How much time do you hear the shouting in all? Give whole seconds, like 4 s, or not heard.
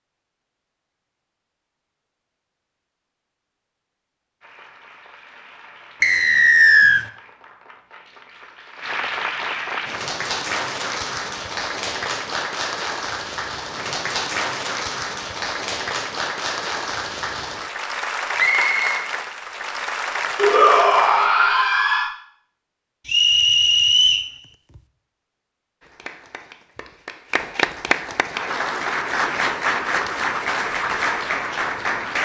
2 s.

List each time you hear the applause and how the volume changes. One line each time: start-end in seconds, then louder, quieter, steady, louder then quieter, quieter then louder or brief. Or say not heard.
4.4-21.3 louder
25.8-32.1 louder.